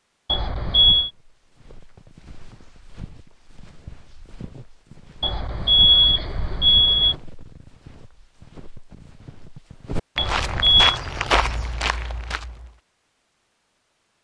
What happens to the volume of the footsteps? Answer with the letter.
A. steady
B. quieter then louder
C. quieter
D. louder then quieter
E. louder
E.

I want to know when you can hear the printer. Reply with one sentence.
The printer can't be heard in this clip.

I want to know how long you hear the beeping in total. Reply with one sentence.
The beeping can be heard for 4 seconds in total.